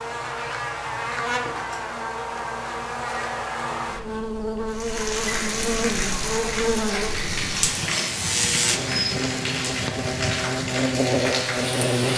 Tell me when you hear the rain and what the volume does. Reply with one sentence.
The rain can be heard from 4.7 to 12.1 s, at a steady volume.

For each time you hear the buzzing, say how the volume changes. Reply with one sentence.
The buzzing can be heard from 0.0 to 12.1 s, at a steady volume.